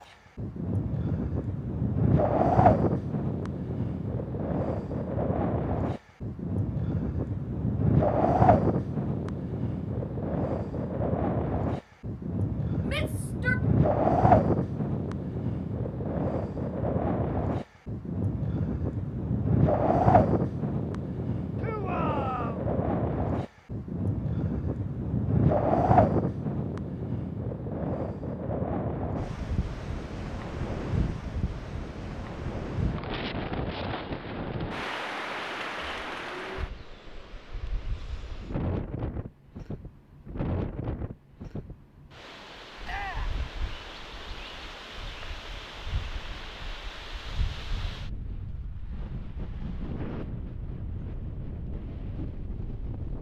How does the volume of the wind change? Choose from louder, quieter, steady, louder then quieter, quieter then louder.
quieter.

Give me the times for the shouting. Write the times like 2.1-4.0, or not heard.
12.8-13.6, 21.6-22.6, 42.9-43.4.